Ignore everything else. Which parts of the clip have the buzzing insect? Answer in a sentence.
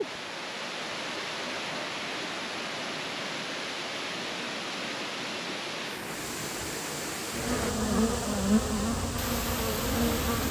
The buzzing insect can be heard from 7.3 to 10.4 s.